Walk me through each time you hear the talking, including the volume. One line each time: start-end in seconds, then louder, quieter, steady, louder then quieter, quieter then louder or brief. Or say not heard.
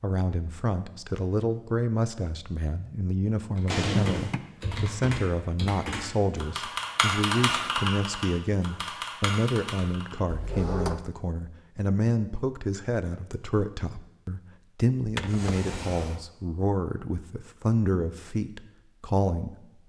0.0-19.8 steady.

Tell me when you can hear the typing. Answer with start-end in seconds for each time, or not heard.
3.5-10.2.